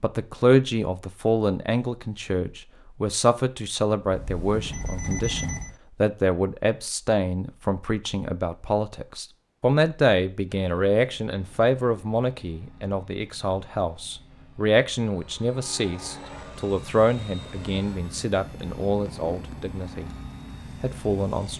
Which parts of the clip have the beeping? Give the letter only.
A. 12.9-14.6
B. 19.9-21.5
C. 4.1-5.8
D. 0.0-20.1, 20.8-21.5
C.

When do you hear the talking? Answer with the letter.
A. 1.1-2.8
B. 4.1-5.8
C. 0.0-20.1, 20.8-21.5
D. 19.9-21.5
C.